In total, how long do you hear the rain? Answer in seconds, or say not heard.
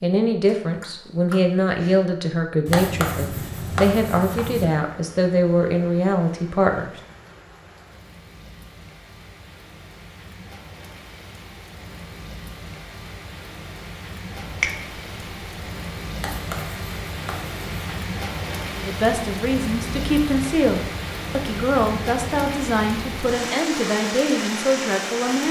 21 s.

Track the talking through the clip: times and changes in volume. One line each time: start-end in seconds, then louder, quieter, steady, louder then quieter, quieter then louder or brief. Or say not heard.
0.0-7.0 steady
18.8-25.4 steady.